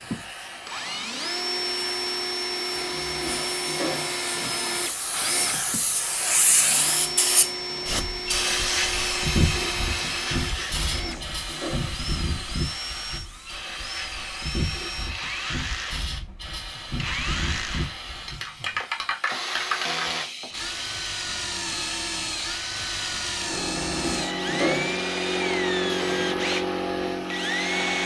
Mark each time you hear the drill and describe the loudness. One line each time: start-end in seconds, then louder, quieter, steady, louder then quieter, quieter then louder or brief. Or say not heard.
0.0-28.0 quieter then louder.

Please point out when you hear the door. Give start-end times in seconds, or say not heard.
2.7-4.1, 10.6-11.9, 23.6-24.9.